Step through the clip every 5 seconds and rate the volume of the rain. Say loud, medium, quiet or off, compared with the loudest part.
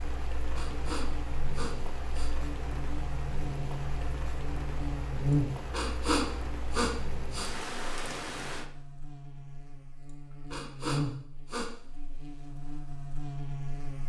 loud, loud, off.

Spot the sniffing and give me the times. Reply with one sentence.
The sniffing can be heard from 0.6 to 2.3 s, from 5.7 to 7.5 s and from 10.5 to 11.7 s.